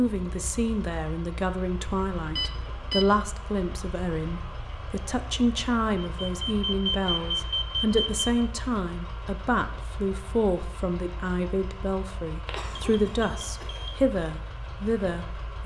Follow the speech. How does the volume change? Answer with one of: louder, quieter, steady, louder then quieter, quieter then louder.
steady.